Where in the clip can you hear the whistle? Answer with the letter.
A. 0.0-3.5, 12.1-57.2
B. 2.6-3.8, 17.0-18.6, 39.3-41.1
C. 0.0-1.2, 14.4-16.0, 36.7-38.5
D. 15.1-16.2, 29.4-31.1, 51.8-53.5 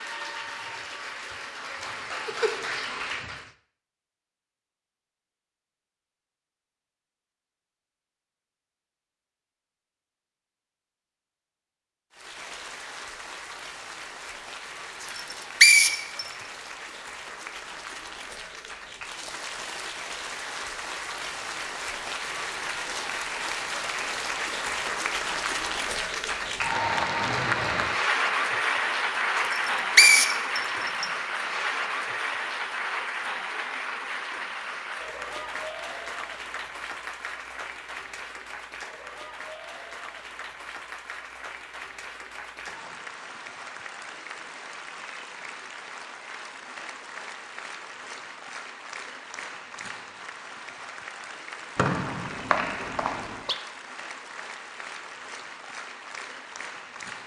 D.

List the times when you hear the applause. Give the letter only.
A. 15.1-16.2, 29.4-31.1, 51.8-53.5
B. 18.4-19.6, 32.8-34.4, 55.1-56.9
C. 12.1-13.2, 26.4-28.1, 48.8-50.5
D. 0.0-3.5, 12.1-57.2
D.